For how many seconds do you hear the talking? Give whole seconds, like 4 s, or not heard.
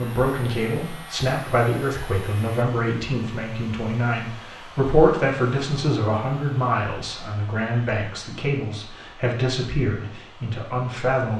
11 s.